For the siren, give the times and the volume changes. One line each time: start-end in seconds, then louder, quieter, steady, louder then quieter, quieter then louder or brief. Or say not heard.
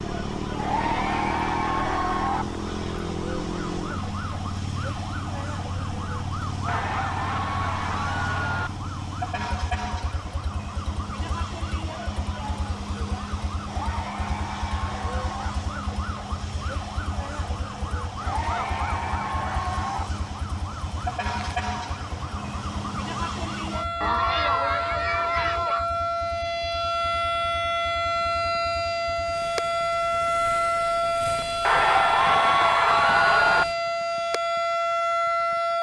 0.0-35.7 louder.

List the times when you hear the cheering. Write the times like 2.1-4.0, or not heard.
0.6-2.5, 6.7-8.7, 13.7-15.5, 18.2-20.1, 24.0-25.9, 31.6-33.6.